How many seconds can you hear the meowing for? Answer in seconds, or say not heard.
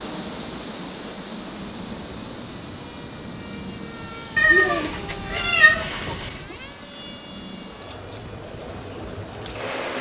2 s.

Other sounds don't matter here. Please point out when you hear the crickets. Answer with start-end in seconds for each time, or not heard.
0.0-9.9.